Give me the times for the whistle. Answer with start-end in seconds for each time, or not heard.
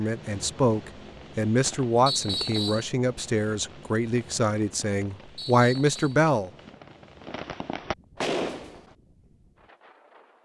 2.0-2.9, 5.3-6.2.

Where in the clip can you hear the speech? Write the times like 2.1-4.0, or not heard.
0.0-6.5.